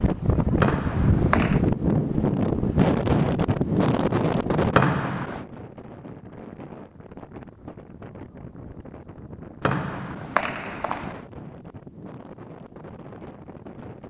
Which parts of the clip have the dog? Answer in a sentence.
The dog can't be heard in this clip.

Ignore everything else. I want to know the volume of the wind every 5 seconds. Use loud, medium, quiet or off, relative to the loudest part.
loud, quiet, quiet.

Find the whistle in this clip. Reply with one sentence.
You can hear the whistle from 0.6 to 1.6 s, from 4.7 to 5.5 s and from 9.6 to 11.2 s.